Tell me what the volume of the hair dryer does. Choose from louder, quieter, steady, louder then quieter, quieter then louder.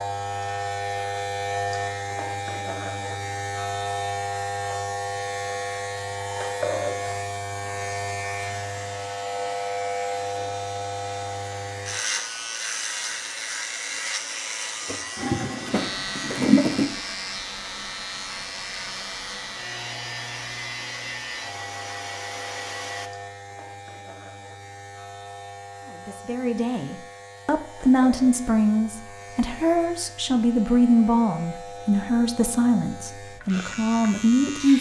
louder.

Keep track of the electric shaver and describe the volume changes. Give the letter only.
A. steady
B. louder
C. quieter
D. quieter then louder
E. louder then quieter
C.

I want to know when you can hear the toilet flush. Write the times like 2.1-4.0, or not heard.
14.8-16.9.